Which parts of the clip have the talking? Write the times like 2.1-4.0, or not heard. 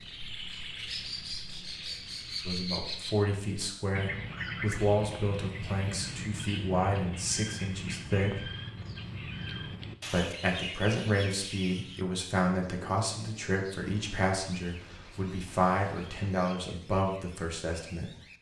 2.5-8.5, 10.1-18.1.